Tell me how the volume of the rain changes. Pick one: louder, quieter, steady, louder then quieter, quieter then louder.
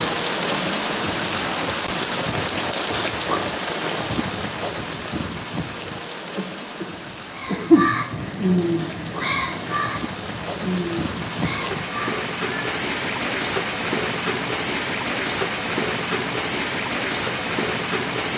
quieter then louder.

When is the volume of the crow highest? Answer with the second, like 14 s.
9 s.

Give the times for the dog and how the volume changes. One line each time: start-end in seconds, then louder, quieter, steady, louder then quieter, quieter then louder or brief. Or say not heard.
not heard.